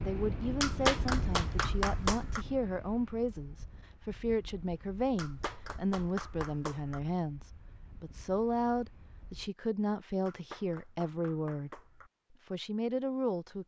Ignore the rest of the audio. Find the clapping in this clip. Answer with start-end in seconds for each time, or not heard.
0.6-2.5, 5.2-7.0, 10.2-12.1.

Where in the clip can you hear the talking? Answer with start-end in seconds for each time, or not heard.
0.1-11.8, 12.5-13.6.